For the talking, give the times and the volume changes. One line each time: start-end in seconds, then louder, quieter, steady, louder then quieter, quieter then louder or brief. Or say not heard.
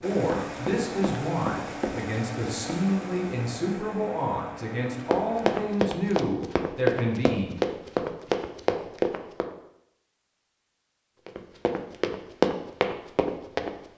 0.0-7.7 steady.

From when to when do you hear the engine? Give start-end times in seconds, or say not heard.
0.0-5.8.